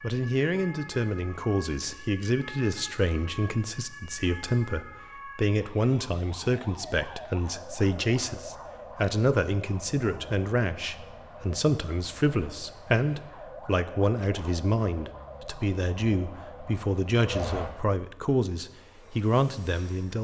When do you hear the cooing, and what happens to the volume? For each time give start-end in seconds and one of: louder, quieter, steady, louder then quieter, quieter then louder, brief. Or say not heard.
not heard.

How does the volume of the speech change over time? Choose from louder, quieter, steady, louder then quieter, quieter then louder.
steady.